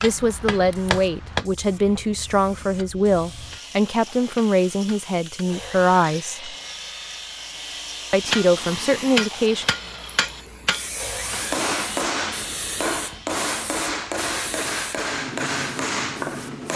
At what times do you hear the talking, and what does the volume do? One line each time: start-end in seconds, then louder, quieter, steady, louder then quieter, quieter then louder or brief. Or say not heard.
0.0-6.5 steady
8.1-9.7 brief.